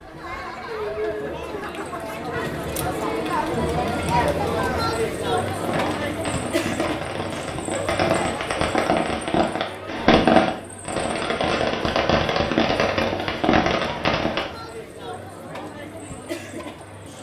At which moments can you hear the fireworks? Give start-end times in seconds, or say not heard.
5.5-14.5.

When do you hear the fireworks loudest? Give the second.
10 s.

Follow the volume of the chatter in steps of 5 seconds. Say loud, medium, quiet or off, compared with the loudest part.
loud, loud, medium, medium.